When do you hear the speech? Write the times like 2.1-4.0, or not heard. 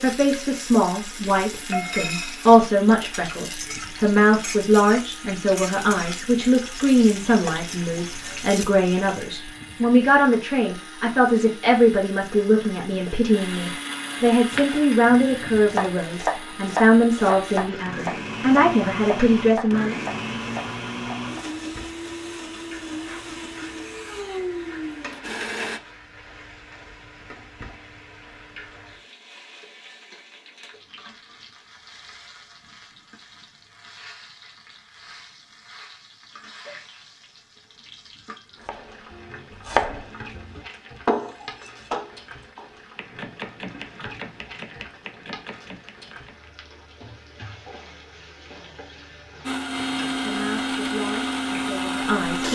0.0-20.0, 50.2-52.4.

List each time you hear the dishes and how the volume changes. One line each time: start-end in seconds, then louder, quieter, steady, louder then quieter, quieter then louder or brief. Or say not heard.
not heard.